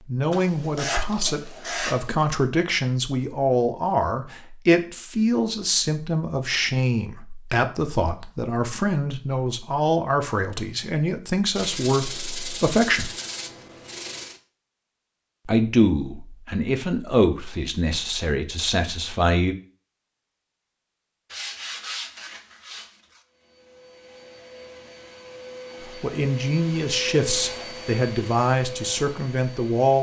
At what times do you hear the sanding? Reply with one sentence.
You can hear the sanding from 0.3 to 2.1 s, from 11.6 to 14.4 s and from 21.3 to 23.2 s.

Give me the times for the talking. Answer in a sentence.
The talking can be heard from 0.1 to 13.1 s, from 15.4 to 19.6 s and from 25.9 to 29.9 s.